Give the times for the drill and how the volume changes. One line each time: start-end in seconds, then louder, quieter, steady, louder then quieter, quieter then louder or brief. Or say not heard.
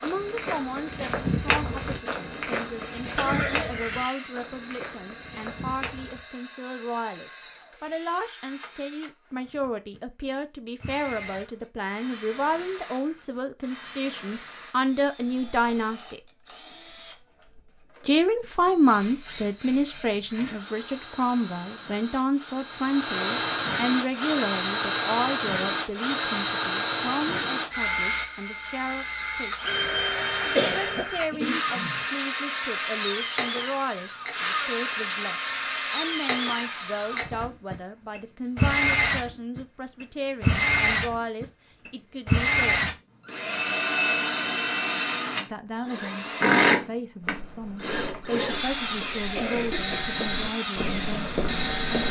0.0-52.0 louder.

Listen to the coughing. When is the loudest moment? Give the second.
31 s.